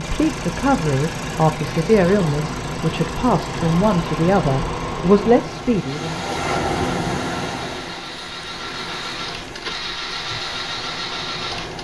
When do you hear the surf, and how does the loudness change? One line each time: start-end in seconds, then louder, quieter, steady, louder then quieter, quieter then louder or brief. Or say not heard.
0.0-11.7 louder then quieter.